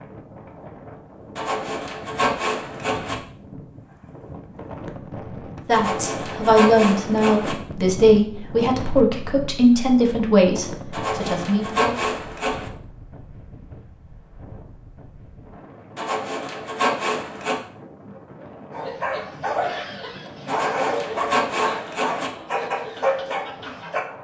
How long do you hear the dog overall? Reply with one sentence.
You can hear the dog for 5 seconds altogether.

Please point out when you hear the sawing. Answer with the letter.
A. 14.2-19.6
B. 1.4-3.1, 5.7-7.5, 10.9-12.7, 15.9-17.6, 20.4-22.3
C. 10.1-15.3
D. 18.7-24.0
B.